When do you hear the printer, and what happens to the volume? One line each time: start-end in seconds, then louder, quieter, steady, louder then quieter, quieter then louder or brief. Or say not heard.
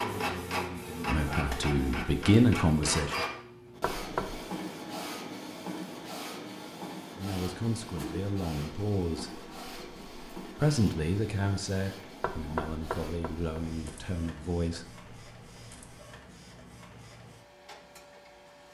0.0-18.6 quieter.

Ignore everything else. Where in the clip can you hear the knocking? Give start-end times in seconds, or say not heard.
3.8-4.4, 12.2-14.1.